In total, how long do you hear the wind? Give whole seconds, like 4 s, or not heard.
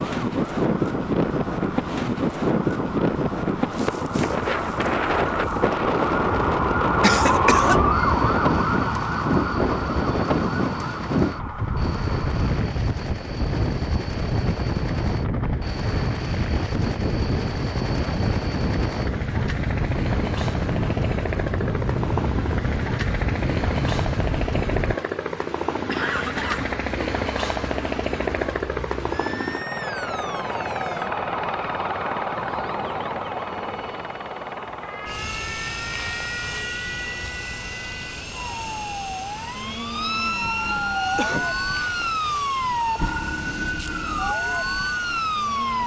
25 s.